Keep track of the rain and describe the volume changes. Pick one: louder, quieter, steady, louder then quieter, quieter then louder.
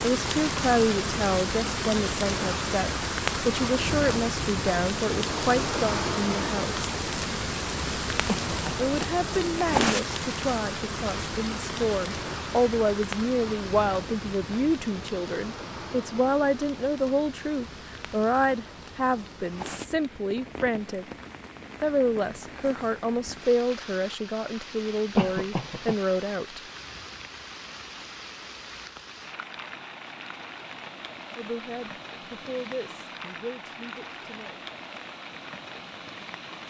quieter.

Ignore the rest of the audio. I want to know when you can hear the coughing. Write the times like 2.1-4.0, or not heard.
8.2-9.2, 25.1-25.9.